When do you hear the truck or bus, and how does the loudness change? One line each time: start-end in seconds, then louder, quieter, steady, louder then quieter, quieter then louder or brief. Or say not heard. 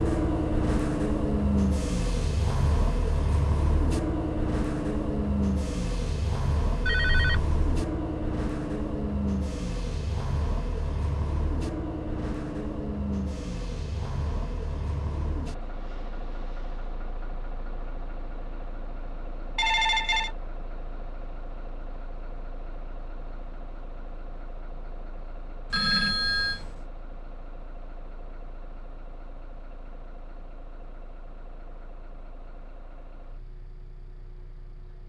0.0-35.0 quieter.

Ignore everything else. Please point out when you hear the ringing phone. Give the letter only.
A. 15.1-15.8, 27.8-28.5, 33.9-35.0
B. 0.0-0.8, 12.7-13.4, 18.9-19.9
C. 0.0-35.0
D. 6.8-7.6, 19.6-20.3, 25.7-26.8
D.